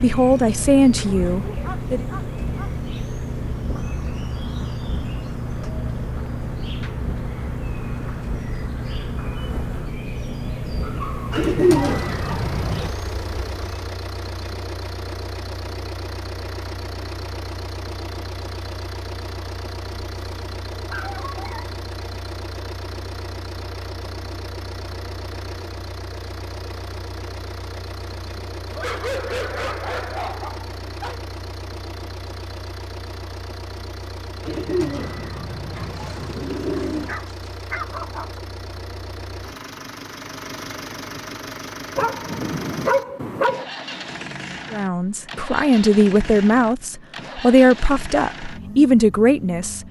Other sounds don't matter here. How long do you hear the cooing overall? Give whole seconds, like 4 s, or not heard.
4 s.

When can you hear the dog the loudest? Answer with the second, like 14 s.
43 s.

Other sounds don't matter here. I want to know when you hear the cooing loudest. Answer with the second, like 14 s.
12 s.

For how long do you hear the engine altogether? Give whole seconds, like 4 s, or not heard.
50 s.